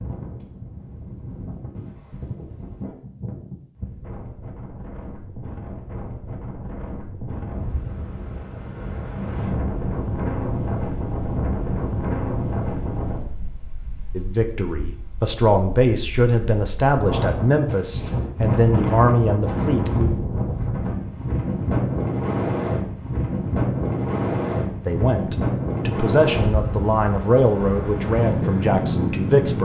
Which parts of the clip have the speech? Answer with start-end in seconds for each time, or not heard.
14.2-20.1, 24.9-29.5.